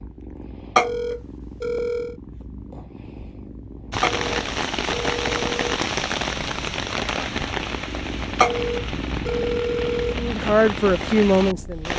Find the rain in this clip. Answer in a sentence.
You can hear the rain from 3.9 to 11.9 s.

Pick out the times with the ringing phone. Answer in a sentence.
You can hear the ringing phone from 0.8 to 2.1 s, from 4.0 to 5.8 s and from 8.4 to 10.2 s.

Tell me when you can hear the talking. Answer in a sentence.
You can hear the talking from 10.2 to 11.9 s.